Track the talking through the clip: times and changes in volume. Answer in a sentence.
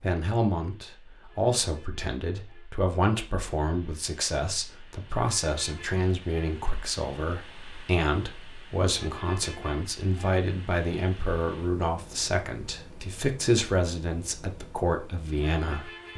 The talking can be heard from 0.0 to 16.1 s, at a steady volume.